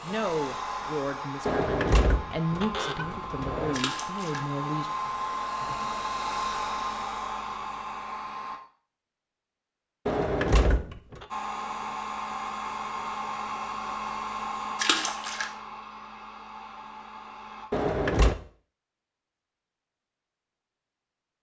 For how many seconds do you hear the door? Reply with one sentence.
You can hear the door for 4 seconds altogether.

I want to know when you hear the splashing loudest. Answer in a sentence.
The loudest moment of the splashing is at 15 seconds.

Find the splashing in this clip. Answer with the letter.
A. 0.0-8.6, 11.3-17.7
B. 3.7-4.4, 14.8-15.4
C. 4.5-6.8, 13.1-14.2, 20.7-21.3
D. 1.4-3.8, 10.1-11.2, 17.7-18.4
B.